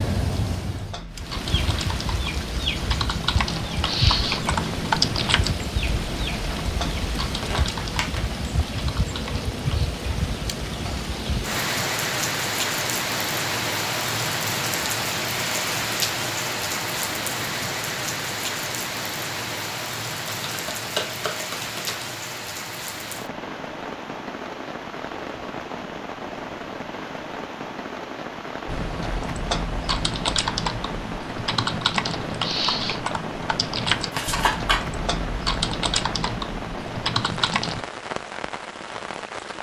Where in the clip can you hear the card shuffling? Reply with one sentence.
You can hear the card shuffling from 7.3 to 8.2 s, from 20.4 to 22.1 s and from 34.1 to 34.8 s.